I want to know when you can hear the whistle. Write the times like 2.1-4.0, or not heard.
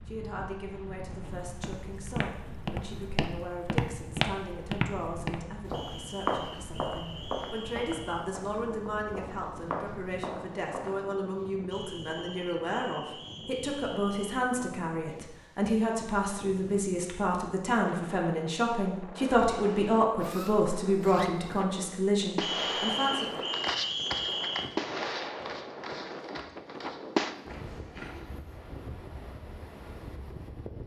5.7-8.2, 11.7-14.4, 22.4-24.7.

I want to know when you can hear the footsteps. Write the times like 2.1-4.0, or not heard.
1.2-11.1, 22.6-28.3.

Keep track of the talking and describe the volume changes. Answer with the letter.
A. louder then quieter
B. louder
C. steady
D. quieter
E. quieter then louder
B.